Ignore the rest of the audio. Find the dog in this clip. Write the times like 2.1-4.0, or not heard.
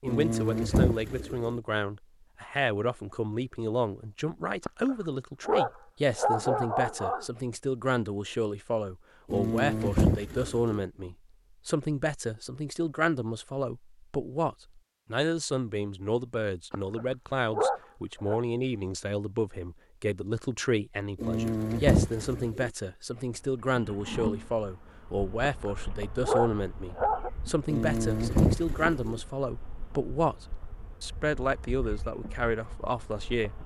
4.7-7.2, 16.7-18.4, 25.4-27.3.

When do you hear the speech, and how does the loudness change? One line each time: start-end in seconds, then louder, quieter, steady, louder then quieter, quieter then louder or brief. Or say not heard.
0.0-33.5 steady.